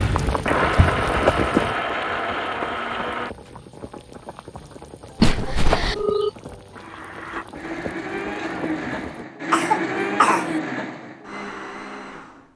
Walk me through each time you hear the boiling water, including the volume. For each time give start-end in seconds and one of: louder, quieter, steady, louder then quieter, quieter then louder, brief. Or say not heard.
0.0-9.2 quieter.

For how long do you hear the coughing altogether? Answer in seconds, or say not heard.
2 s.